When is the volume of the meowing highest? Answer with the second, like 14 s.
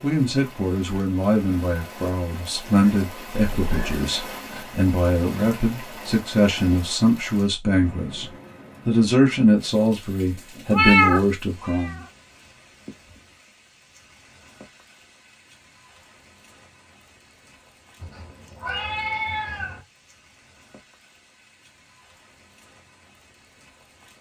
11 s.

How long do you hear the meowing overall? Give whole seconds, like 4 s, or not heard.
4 s.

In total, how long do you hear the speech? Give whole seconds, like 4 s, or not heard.
12 s.